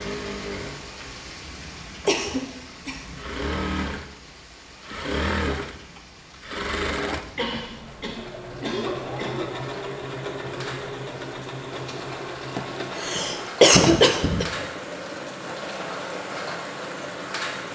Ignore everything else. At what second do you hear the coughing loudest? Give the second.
14 s.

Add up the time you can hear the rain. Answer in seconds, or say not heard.
18 s.